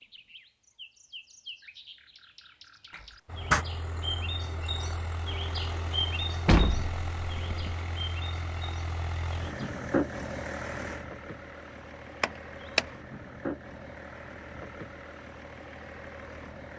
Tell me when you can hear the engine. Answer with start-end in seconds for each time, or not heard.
3.2-16.7.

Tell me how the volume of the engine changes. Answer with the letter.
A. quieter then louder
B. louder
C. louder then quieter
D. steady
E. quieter
C.